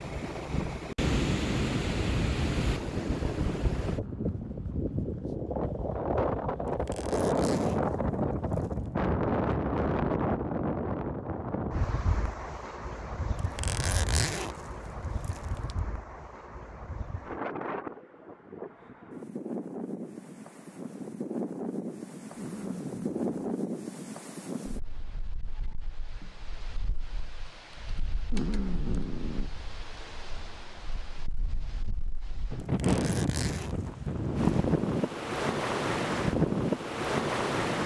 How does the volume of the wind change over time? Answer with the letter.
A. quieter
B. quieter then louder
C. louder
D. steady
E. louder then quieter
B.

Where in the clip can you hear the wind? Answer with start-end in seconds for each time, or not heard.
0.0-37.8.